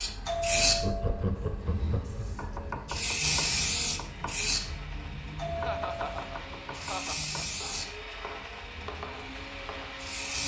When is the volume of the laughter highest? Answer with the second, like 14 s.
1 s.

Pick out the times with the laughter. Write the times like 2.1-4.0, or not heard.
0.8-2.3, 5.5-7.3.